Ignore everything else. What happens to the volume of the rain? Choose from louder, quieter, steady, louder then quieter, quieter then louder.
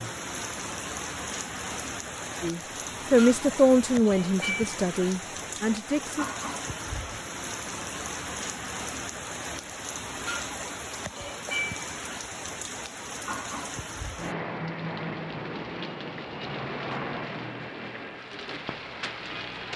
steady.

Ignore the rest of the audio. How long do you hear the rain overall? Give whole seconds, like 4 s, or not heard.
20 s.